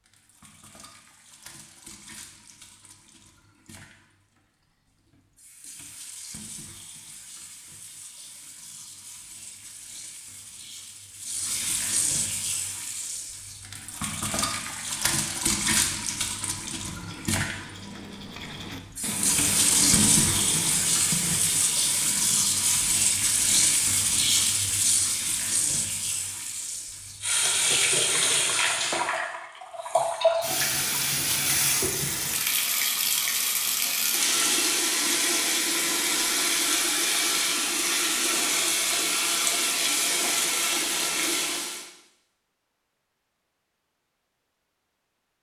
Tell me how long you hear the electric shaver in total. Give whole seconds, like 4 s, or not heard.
not heard.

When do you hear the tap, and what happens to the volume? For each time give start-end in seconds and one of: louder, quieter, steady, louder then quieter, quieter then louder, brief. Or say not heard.
0.0-41.9 louder.